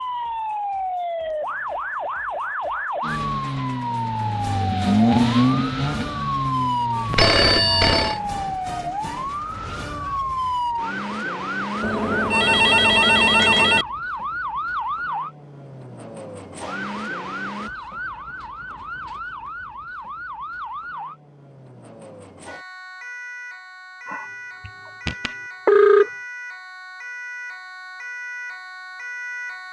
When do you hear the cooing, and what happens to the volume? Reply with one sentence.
You can't hear the cooing here.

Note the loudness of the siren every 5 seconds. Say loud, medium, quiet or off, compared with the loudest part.
loud, loud, loud, medium, medium, medium.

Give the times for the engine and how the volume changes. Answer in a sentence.
You can hear the engine from 3.0 to 8.0 s, getting louder then quieter.